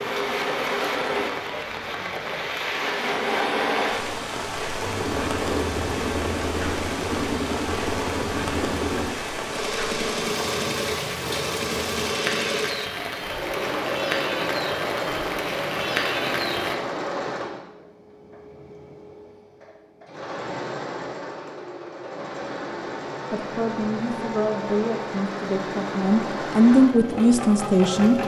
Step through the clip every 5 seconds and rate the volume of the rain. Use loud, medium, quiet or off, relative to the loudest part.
loud, loud, loud, loud, off, off.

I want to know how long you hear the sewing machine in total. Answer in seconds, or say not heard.
28 s.